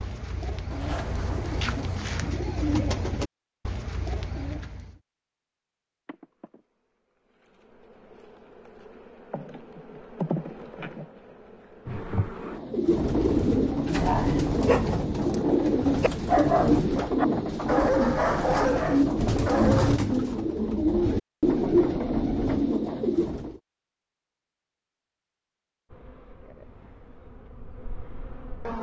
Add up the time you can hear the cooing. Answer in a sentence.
The cooing can be heard for 16 seconds in total.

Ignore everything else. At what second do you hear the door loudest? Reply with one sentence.
The volume of the door peaks at 1 second.